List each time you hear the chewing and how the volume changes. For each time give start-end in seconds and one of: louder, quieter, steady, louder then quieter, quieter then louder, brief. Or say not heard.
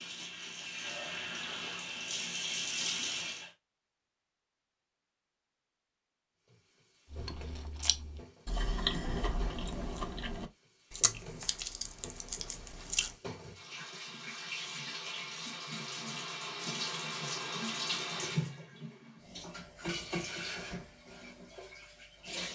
7.1-13.2 louder then quieter.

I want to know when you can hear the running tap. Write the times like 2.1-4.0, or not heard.
0.0-3.5, 6.5-22.5.